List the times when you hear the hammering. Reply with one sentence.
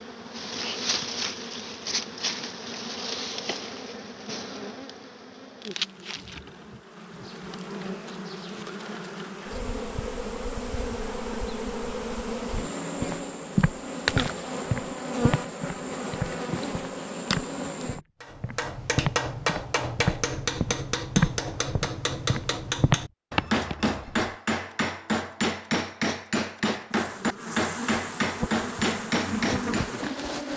The hammering can be heard from 18.2 to 30.1 s.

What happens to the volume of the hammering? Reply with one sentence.
The loudness of the hammering stays about the same.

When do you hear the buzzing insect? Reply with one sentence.
You can hear the buzzing insect from 0.0 to 18.0 s and from 26.9 to 30.5 s.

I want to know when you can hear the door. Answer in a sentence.
The door can't be heard in this clip.